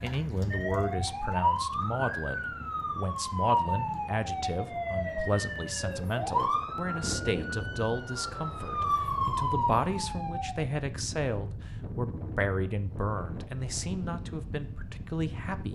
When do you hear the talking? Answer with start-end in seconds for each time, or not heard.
0.0-15.7.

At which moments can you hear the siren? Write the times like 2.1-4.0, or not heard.
0.0-10.6.